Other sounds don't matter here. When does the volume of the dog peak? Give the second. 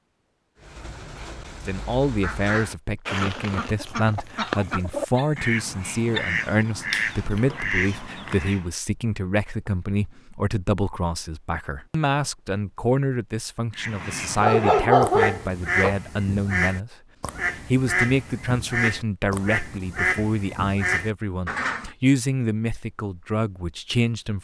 15 s.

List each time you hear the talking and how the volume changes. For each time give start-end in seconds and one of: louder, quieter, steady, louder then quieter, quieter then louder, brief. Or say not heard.
1.6-24.3 steady.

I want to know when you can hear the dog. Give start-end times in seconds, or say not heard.
4.3-5.3, 6.1-6.5, 14.4-15.9.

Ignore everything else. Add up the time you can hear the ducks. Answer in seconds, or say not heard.
16 s.